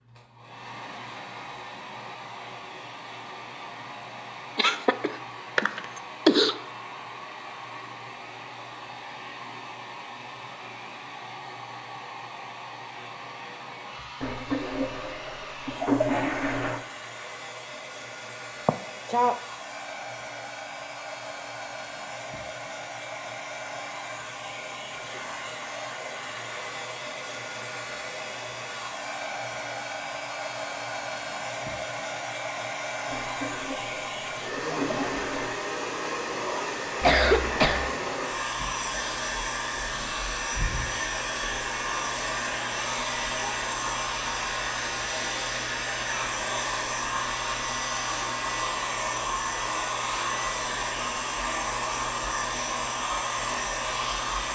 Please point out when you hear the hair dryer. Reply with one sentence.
You can hear the hair dryer from 0.0 to 54.4 s.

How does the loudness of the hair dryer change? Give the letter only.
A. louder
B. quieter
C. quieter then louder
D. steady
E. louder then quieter
A.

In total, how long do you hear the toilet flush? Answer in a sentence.
You can hear the toilet flush for 5 seconds altogether.